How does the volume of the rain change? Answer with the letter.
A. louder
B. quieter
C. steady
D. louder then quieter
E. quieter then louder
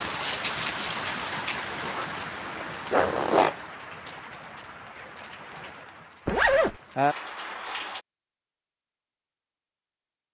E.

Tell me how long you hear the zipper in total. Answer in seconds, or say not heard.
2 s.